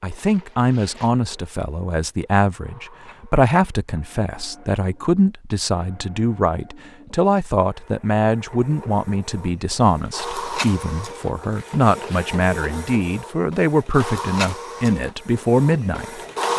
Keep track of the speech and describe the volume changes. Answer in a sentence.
The loudness of the speech stays about the same.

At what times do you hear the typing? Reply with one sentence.
The typing can't be heard in this clip.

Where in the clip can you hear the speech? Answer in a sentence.
The speech can be heard from 0.0 to 16.5 s.